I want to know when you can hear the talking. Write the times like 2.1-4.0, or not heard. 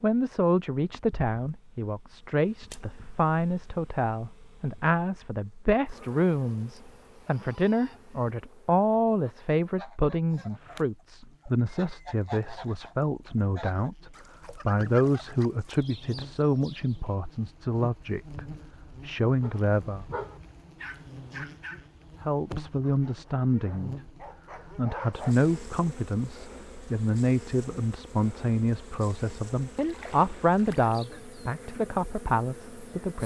0.0-20.1, 22.2-23.9, 24.8-33.2.